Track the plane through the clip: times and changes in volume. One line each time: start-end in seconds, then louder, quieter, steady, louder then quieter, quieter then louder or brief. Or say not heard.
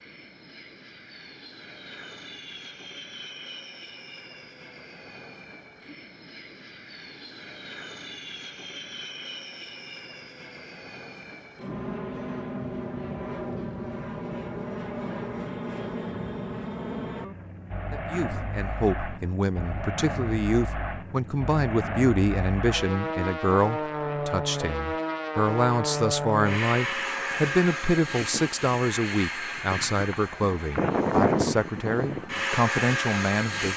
0.0-33.7 louder.